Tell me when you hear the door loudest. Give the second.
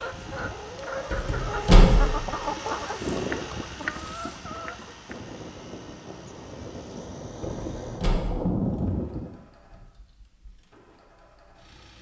2 s.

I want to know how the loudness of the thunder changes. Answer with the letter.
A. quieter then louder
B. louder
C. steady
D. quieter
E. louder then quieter
B.